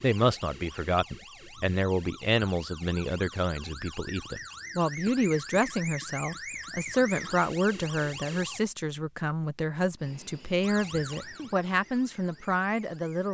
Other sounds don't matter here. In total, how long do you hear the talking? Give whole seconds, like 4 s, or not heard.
13 s.